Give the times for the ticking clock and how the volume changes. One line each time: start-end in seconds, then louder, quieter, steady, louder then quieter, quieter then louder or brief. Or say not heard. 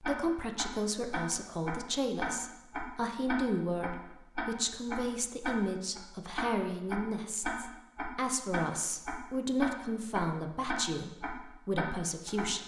0.0-12.5 steady.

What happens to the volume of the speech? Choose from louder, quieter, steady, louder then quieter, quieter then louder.
steady.